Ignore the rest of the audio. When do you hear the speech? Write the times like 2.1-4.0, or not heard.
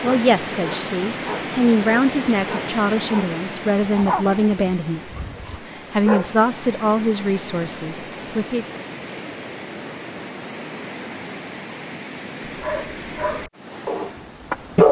0.0-8.8.